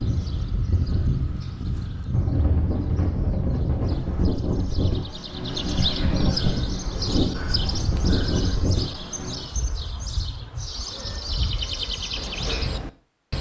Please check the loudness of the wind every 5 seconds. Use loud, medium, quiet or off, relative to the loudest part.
loud, loud, off.